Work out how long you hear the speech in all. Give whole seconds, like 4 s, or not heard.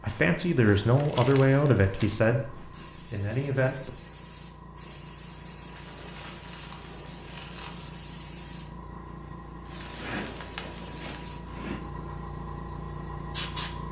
4 s.